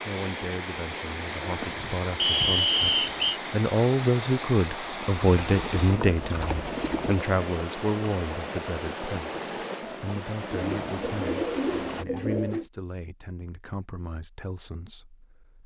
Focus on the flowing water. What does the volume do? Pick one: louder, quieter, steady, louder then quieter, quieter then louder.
steady.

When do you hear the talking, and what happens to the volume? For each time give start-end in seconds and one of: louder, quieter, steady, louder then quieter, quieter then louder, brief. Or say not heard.
0.1-15.6 louder then quieter.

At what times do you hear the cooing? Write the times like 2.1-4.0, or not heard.
1.6-3.2, 5.2-7.2, 10.5-12.7.